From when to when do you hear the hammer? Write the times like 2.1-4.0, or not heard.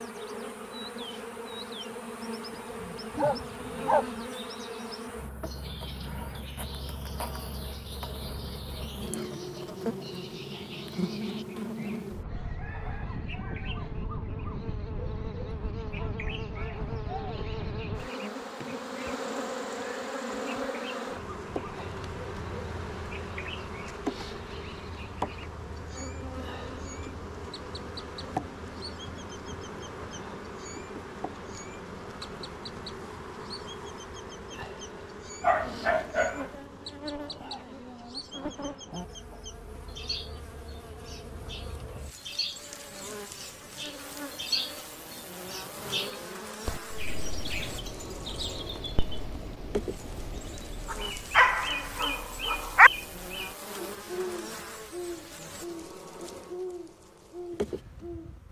not heard.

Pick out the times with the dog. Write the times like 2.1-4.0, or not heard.
2.5-4.0, 35.4-36.5, 50.9-52.9.